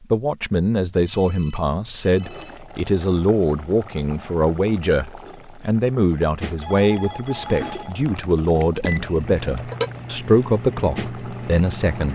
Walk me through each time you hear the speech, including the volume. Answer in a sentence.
The speech can be heard from 0.0 to 12.0 s, at a steady volume.